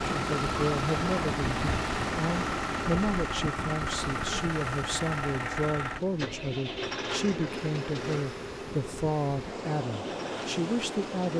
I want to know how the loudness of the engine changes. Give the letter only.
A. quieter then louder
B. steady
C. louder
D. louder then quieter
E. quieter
E.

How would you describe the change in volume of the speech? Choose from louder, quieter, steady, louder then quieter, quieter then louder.
steady.